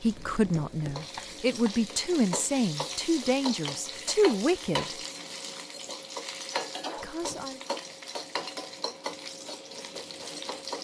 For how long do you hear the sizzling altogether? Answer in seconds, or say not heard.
11 s.